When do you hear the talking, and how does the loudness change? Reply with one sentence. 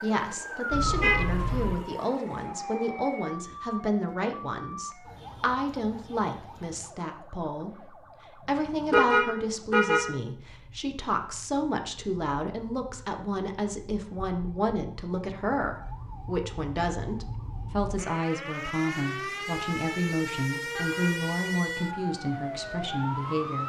You can hear the talking from 0.0 to 23.6 s, at a steady volume.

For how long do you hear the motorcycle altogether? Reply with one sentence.
The motorcycle can't be heard in this clip.